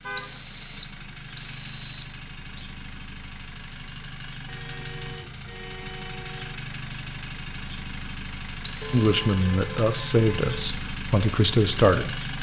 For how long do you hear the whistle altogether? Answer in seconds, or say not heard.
3 s.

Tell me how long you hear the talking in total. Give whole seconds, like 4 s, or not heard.
3 s.